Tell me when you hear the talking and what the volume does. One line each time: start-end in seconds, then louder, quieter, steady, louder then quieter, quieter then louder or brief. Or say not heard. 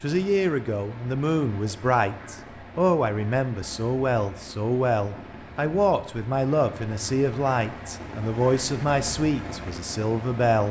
0.0-10.6 steady.